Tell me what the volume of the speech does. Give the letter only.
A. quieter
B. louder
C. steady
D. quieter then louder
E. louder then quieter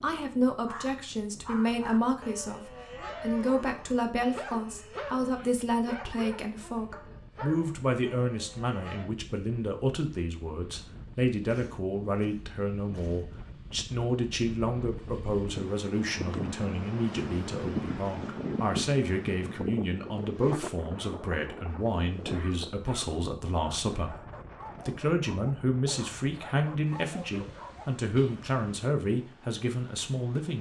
C.